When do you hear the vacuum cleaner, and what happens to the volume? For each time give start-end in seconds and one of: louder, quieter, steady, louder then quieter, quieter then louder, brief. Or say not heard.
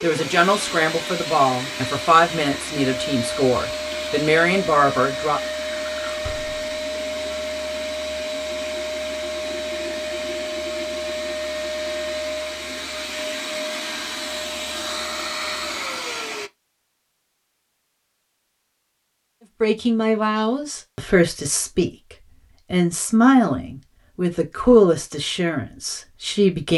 0.0-16.5 steady.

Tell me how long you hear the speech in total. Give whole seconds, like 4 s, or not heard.
12 s.